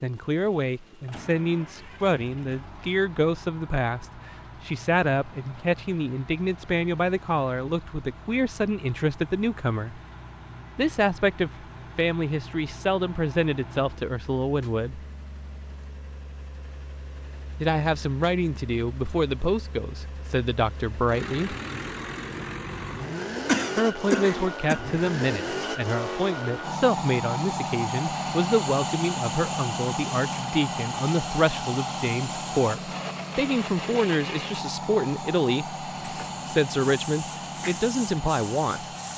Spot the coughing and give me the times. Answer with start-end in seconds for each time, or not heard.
23.4-24.8.